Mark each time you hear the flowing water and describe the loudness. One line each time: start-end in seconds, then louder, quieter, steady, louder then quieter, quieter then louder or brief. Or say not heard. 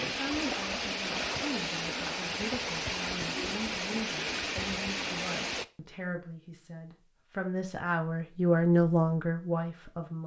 0.0-5.7 steady.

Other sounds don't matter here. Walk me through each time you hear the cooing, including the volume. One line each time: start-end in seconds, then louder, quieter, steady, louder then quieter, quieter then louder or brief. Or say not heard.
not heard.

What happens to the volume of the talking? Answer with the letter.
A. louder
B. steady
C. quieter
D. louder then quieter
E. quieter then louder
A.